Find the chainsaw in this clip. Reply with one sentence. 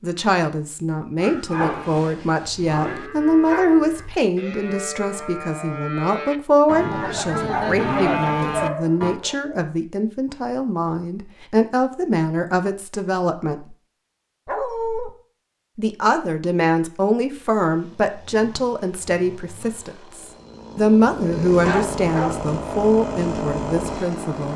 The chainsaw can be heard from 17.6 to 24.5 s.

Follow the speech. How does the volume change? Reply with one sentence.
The volume of the speech stays about the same.